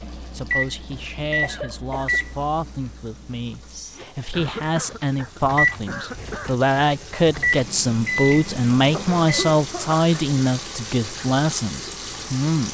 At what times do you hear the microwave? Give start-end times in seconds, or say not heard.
0.0-9.7.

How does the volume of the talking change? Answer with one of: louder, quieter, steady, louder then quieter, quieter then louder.
louder.